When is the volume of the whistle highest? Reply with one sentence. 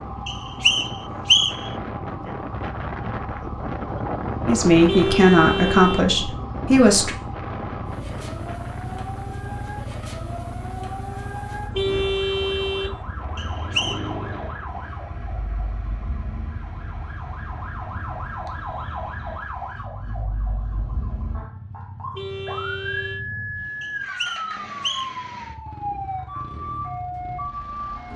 The loudest moment of the whistle is at 1 second.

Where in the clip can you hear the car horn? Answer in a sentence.
You can hear the car horn from 4.8 to 6.1 s, from 11.7 to 12.9 s and from 22.1 to 23.2 s.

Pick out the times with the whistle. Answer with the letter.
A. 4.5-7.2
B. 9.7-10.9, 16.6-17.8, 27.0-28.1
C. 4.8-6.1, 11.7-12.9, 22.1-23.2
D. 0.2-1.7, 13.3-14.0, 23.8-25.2
D.